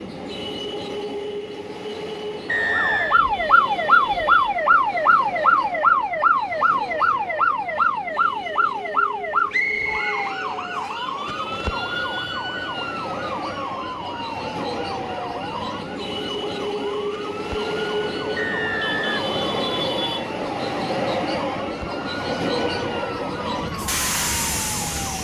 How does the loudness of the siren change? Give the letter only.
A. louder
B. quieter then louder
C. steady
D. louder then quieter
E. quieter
E.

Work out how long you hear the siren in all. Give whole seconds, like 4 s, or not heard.
22 s.